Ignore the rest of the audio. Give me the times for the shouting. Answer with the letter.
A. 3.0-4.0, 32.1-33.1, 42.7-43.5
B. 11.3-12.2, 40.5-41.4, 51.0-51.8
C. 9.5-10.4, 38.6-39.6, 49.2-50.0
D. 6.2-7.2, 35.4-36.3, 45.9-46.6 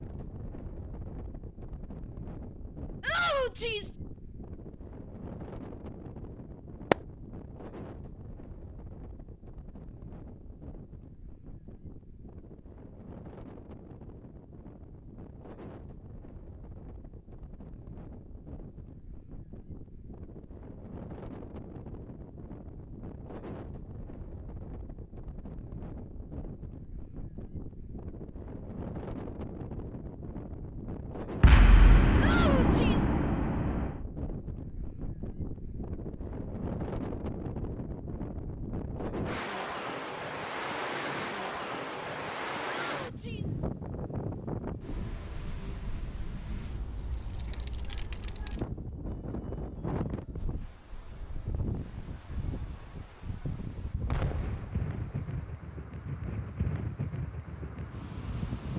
A.